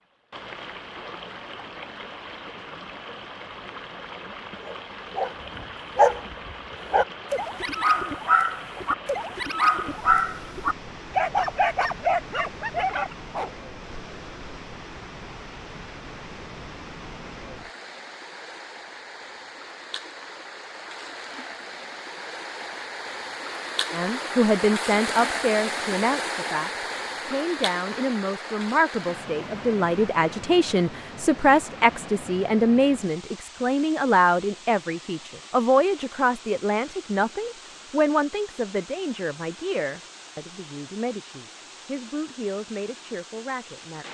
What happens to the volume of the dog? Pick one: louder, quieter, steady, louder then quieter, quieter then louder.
steady.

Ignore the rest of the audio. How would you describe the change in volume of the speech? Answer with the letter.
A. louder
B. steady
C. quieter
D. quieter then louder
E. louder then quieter
C.